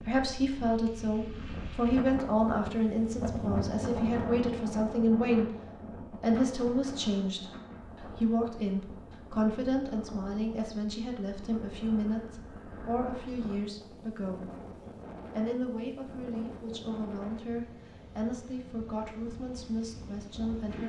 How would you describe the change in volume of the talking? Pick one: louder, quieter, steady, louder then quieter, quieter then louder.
quieter.